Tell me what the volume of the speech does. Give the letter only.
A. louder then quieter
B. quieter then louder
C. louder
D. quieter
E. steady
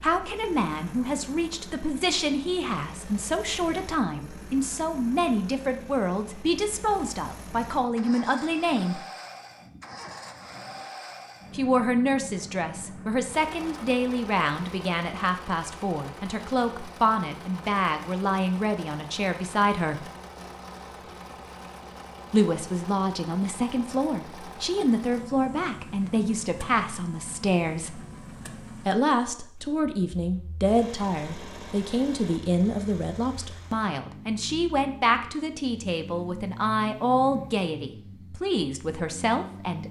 E.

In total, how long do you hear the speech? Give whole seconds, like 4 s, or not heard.
34 s.